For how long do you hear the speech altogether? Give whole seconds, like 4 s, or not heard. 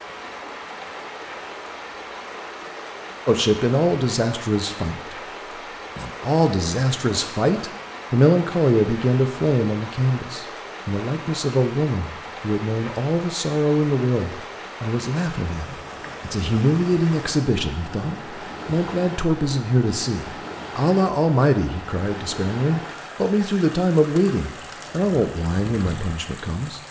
23 s.